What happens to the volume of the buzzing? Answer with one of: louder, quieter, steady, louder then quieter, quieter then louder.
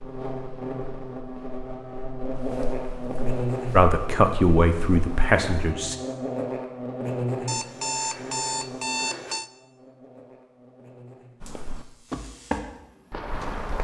quieter.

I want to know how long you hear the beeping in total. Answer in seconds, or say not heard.
2 s.